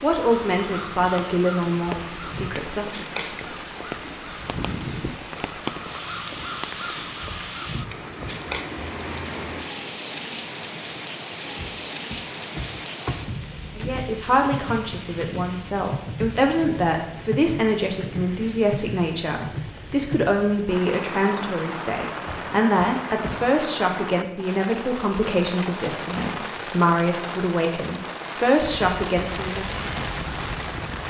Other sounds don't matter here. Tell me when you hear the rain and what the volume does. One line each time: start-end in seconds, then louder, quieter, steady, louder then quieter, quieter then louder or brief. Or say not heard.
0.0-31.0 steady.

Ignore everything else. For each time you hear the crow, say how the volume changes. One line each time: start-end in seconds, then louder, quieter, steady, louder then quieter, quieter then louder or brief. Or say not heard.
0.2-8.7 steady
28.6-31.0 brief.